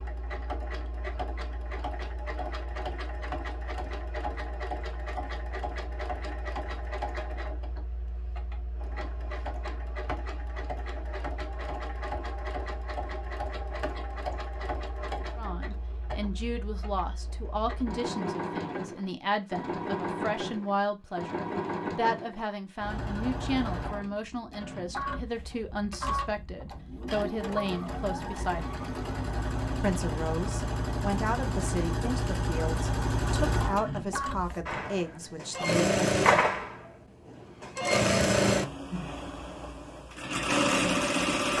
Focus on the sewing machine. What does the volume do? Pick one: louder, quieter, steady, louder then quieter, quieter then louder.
louder.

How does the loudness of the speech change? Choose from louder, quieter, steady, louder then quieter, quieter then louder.
steady.